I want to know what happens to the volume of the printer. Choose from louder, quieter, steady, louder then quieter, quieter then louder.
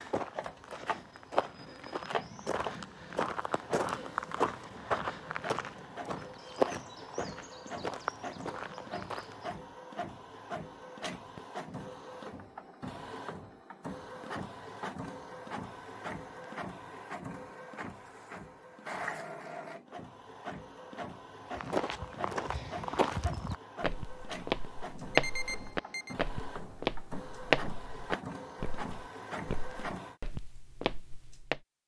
steady.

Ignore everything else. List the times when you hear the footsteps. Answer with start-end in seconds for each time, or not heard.
0.0-9.5, 21.6-31.6.